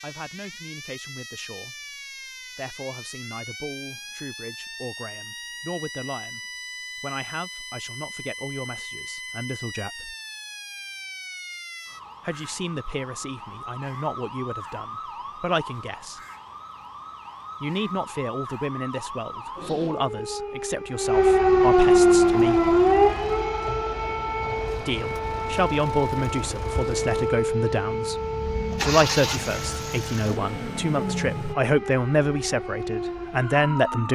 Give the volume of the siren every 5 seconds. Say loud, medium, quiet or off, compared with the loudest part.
quiet, quiet, quiet, quiet, loud, medium, quiet.